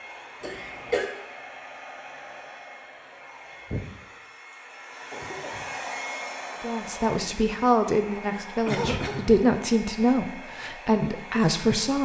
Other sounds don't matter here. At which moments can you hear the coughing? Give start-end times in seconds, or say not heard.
0.4-1.1, 5.1-5.8, 8.7-9.4.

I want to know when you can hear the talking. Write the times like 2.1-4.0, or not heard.
6.6-12.0.